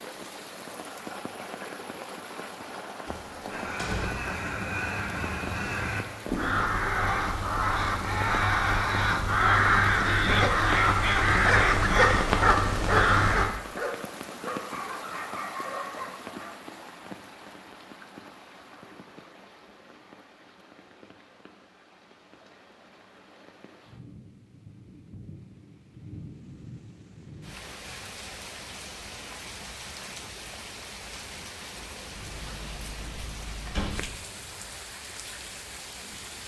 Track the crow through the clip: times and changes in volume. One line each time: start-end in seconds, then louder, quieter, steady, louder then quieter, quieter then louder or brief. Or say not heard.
3.5-13.5 louder.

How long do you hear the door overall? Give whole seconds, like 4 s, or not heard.
3 s.